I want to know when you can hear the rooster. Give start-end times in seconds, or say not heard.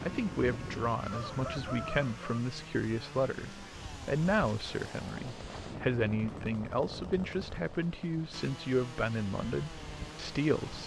0.5-2.4.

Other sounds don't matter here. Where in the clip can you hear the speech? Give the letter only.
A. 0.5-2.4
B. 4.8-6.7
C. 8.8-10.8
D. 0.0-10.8
D.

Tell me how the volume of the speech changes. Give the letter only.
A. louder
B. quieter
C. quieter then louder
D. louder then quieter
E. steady
E.